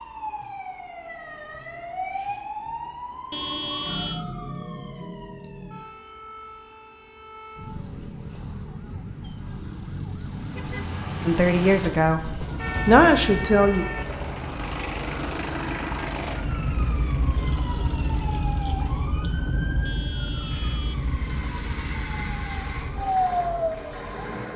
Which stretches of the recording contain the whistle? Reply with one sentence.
The whistle can't be heard in this clip.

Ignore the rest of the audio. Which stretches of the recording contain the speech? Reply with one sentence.
You can hear the speech from 11.2 to 13.8 s.